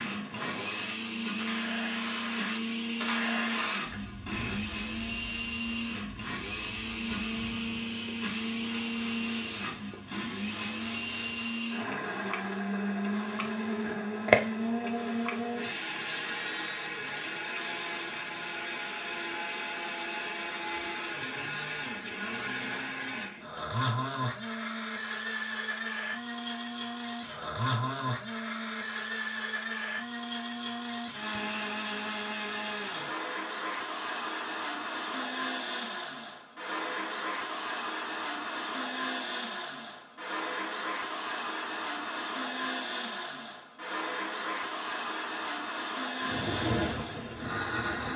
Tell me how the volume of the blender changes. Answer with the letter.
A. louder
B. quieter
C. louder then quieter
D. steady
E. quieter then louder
D.